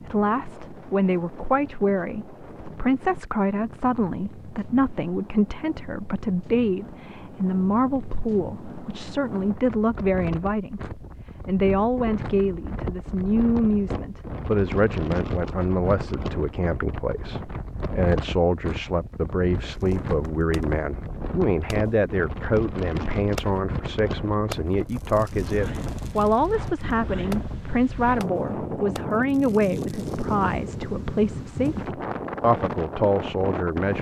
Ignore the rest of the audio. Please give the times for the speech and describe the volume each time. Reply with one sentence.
You can hear the speech from 0.0 to 33.9 s, at a steady volume.